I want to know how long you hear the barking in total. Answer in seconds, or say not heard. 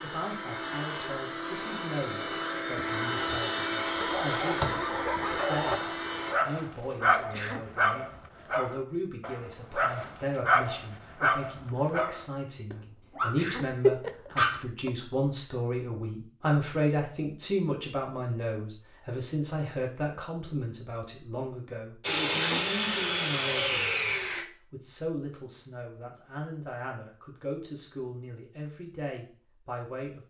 11 s.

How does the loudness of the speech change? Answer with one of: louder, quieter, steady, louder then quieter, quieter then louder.
louder then quieter.